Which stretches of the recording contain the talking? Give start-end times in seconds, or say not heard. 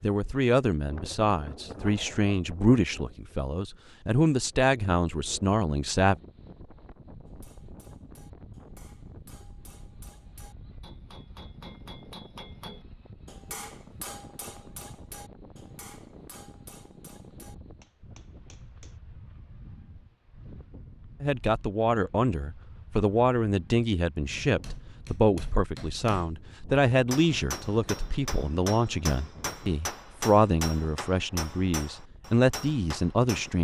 0.0-6.2, 21.2-33.5.